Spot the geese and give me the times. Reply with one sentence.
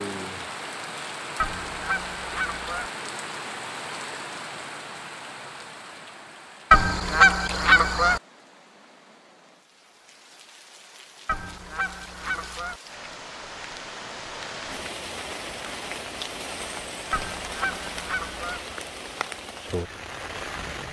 You can hear the geese from 1.4 to 2.9 s, from 6.7 to 8.2 s, from 11.2 to 12.8 s and from 17.1 to 18.6 s.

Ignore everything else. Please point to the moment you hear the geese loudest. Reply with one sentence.
The loudest moment of the geese is at 7 seconds.